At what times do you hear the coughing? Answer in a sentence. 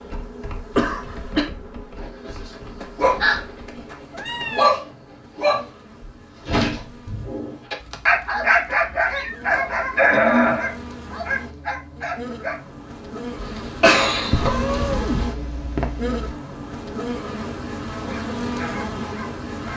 You can hear the coughing from 0.7 to 1.5 s, from 9.5 to 10.8 s and from 13.4 to 15.2 s.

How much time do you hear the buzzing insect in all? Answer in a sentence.
You can hear the buzzing insect for 20 seconds altogether.